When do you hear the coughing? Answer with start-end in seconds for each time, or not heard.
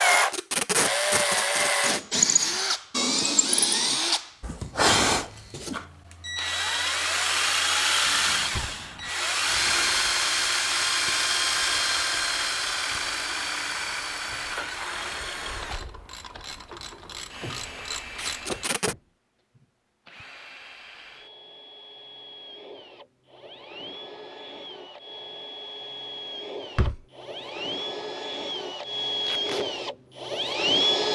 not heard.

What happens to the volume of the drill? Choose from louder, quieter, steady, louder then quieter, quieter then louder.
quieter then louder.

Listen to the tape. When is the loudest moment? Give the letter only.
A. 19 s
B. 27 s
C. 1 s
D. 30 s
C.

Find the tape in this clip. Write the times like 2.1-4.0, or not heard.
0.1-2.0, 18.1-18.9, 29.2-29.6.